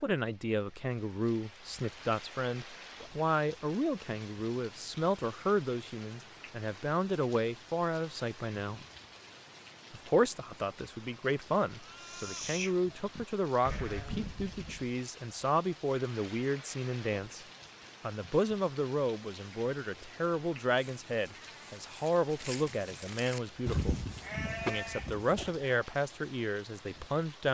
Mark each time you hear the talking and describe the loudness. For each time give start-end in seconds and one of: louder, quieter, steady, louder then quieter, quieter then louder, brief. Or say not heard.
0.0-8.8 steady
9.9-24.0 steady
24.6-27.4 brief.